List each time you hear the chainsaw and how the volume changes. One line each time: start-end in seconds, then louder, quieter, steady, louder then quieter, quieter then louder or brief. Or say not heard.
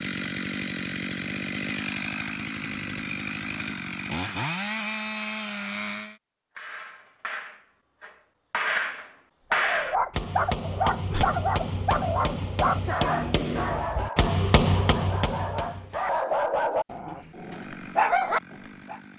0.0-6.2 steady
17.3-19.1 brief.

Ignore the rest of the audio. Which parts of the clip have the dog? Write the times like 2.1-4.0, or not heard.
9.5-19.0.